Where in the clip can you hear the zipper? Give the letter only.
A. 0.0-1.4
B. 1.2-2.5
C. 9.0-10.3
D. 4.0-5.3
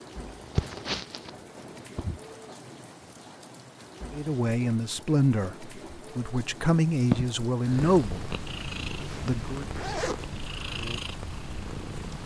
C.